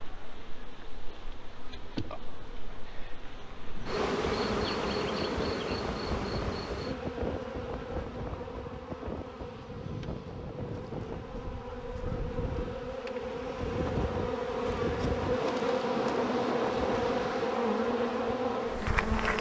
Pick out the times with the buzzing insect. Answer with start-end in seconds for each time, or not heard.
0.0-19.3.